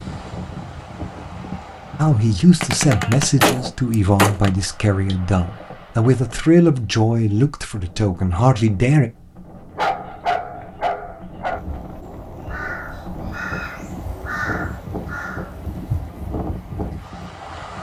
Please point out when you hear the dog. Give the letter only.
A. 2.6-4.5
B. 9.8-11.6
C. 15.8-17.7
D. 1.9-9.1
B.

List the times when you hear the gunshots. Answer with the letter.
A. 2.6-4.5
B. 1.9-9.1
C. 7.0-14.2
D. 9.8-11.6
A.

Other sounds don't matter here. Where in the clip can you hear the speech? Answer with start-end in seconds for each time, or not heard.
1.9-9.1.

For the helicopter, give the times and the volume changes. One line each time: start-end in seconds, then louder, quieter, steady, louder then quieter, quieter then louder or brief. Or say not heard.
not heard.